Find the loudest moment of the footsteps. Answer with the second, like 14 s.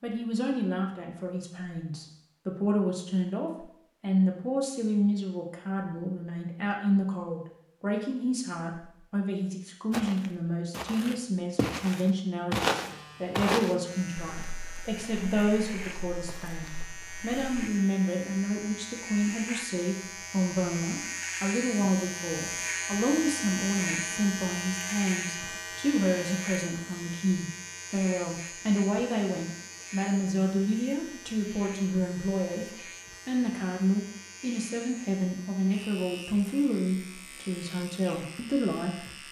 13 s.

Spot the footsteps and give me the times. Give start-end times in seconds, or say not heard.
9.9-17.7.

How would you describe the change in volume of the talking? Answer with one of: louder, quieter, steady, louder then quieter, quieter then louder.
steady.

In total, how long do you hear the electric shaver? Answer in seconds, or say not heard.
26 s.